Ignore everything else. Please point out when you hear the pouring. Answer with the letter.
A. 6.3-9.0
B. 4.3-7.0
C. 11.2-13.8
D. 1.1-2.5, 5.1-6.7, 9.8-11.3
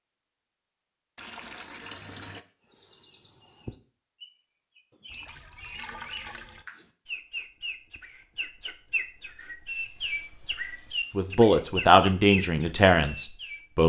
D.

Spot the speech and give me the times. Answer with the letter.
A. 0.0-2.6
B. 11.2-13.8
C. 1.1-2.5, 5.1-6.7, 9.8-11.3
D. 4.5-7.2
B.